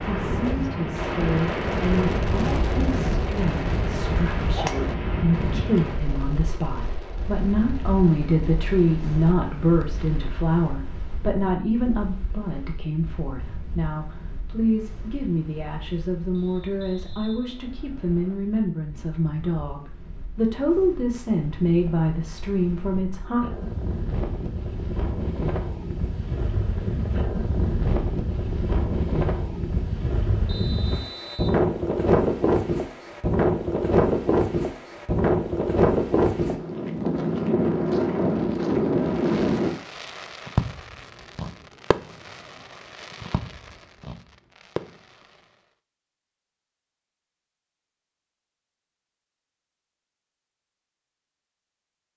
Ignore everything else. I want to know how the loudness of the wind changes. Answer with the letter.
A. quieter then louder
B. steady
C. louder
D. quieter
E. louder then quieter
A.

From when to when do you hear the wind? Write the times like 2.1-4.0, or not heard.
0.0-39.8.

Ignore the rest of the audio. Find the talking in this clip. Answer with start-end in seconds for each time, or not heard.
0.0-23.4.